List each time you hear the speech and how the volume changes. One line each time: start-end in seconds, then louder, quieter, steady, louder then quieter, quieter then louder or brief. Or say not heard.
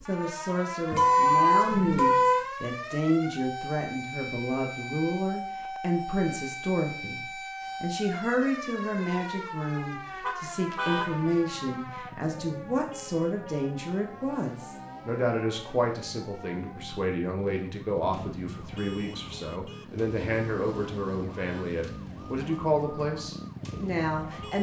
0.0-24.5 steady.